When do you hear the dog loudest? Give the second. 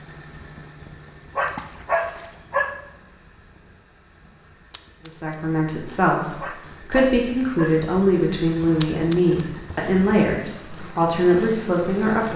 2 s.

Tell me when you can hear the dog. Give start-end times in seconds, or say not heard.
1.4-2.8, 6.3-7.8.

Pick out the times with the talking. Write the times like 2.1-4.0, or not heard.
5.0-12.3.